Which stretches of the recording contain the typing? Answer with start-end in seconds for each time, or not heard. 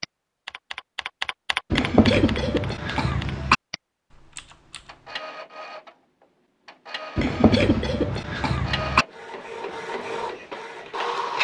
0.0-5.2.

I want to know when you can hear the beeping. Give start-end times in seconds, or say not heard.
not heard.